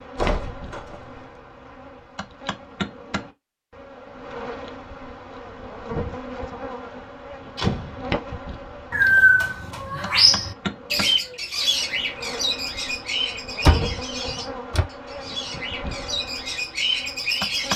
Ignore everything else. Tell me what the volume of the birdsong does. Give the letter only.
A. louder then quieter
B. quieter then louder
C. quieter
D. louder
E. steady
B.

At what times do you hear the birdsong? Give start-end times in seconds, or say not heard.
8.9-17.7.